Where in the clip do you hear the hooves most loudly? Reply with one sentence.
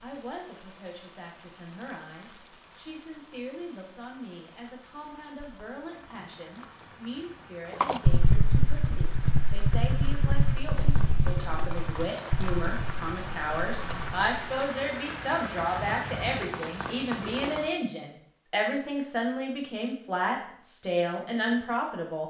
The loudest moment of the hooves is at 8 seconds.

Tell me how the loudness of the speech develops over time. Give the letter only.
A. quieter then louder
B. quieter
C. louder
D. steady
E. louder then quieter
C.